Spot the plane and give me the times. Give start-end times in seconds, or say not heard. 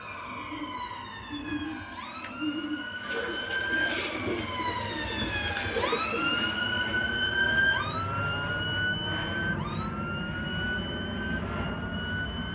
0.0-12.5.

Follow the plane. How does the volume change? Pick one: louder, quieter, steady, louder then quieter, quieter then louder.
louder.